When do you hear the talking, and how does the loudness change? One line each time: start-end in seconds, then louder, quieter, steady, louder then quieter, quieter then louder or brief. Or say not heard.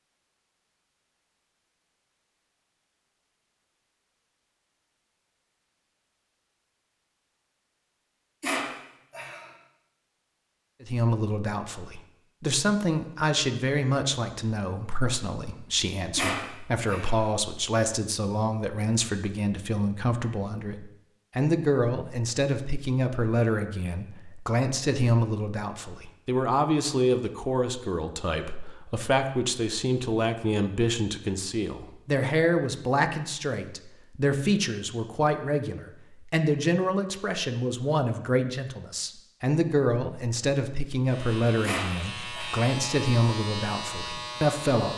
10.8-44.9 steady.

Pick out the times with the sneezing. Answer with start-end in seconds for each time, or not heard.
8.4-9.5, 16.1-17.2, 41.6-42.6.